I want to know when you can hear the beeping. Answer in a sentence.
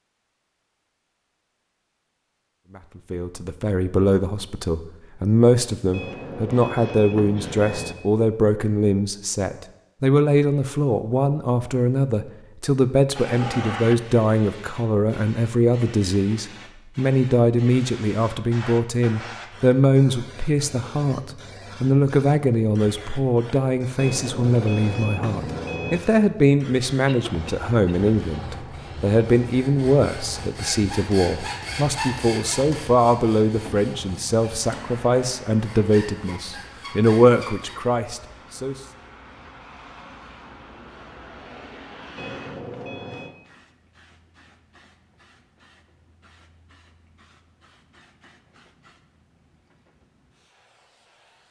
The beeping can be heard from 5.9 to 8.0 s, from 23.9 to 26.0 s and from 42.1 to 43.4 s.